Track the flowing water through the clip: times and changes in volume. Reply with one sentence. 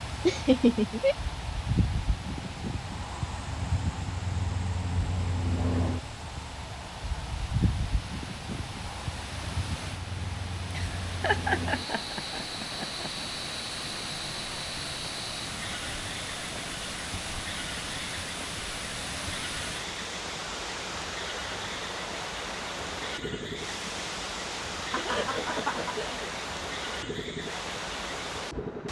The flowing water can be heard from 0.0 to 28.8 s, getting louder.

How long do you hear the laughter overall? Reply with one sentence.
You can hear the laughter for 5 seconds altogether.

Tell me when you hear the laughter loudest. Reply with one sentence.
The volume of the laughter peaks at 1 second.